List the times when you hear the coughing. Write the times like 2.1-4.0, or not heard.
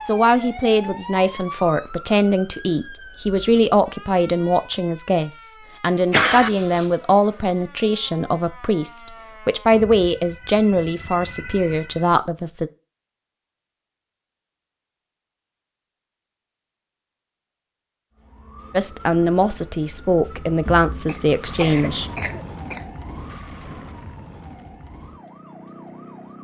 6.1-6.9, 21.1-22.9.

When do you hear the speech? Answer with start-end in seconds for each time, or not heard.
0.0-12.7, 18.7-22.1.